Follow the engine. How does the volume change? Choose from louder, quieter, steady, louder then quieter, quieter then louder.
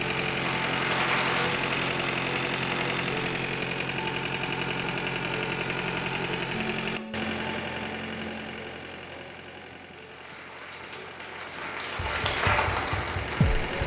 quieter.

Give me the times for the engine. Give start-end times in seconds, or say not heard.
0.0-13.8.